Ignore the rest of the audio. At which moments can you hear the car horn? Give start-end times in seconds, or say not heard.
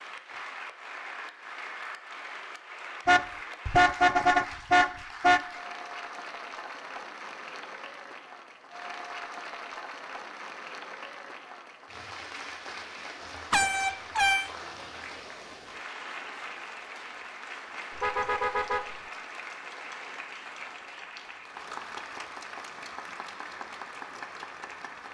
3.0-5.4, 13.5-14.5, 17.9-19.0.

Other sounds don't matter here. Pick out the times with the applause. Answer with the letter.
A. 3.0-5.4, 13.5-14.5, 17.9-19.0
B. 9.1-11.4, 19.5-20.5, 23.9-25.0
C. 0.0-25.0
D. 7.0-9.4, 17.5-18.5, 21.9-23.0
C.